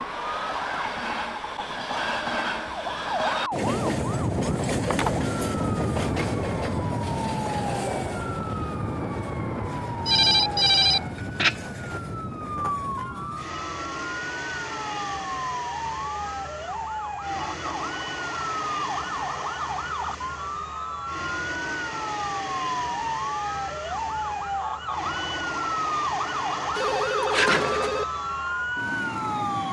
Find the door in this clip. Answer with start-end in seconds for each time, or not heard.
not heard.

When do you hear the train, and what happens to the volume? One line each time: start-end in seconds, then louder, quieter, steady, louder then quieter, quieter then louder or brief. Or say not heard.
0.0-29.6 quieter.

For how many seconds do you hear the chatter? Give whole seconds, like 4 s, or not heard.
not heard.